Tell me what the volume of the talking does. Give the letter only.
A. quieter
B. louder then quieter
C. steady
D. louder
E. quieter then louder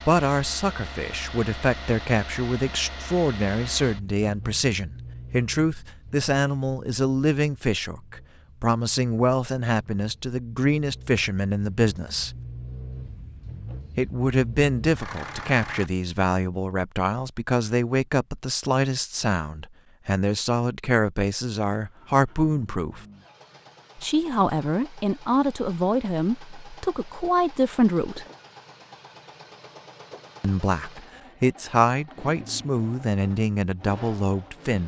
C.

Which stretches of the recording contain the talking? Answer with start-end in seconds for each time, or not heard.
0.1-12.3, 13.9-23.0, 23.9-28.2, 30.4-34.8.